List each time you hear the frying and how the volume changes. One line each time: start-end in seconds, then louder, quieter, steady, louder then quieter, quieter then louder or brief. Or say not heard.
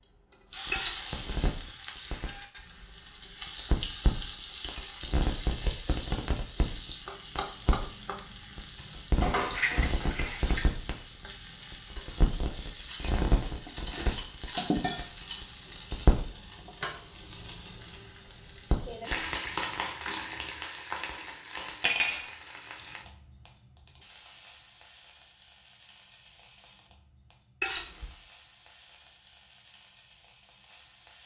0.0-31.2 quieter.